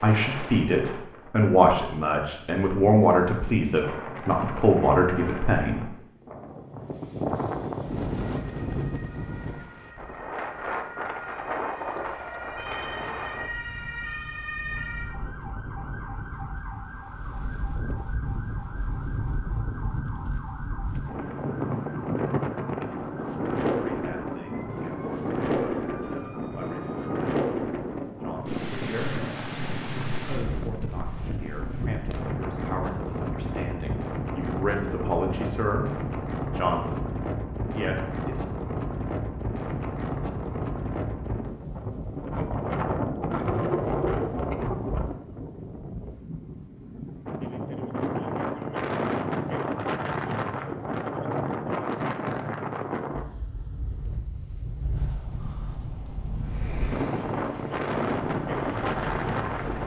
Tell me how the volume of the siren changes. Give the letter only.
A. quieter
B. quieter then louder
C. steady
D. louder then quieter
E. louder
D.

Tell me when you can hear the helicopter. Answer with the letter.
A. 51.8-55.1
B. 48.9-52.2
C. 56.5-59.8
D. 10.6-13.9
C.